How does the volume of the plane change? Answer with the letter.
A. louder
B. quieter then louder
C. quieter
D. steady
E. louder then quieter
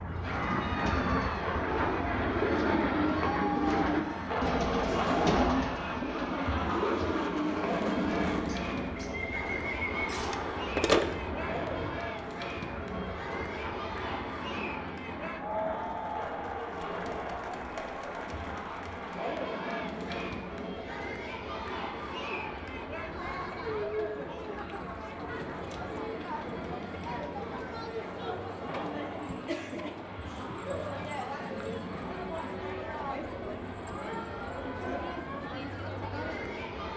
C.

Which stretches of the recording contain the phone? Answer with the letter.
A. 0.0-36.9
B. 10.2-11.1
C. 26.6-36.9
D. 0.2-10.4
B.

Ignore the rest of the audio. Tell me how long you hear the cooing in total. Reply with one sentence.
You can hear the cooing for 10 seconds altogether.